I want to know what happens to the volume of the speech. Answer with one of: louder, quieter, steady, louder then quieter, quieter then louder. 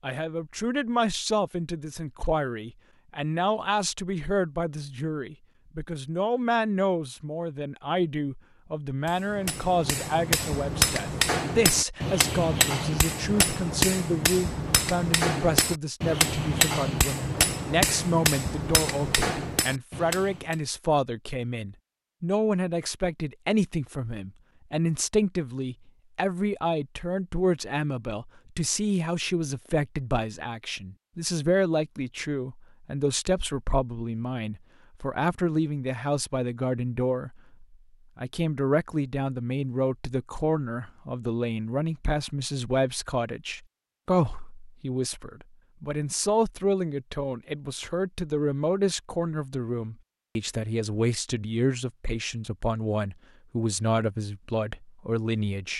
steady.